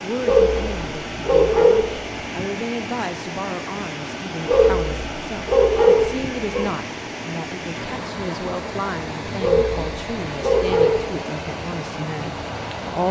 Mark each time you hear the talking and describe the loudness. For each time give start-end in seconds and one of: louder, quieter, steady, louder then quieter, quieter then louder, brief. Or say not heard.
0.0-13.0 steady.